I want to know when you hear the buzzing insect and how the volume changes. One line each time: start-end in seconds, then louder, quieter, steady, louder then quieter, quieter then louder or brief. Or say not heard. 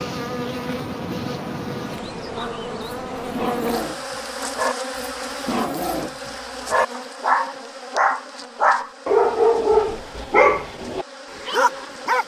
0.0-12.2 quieter.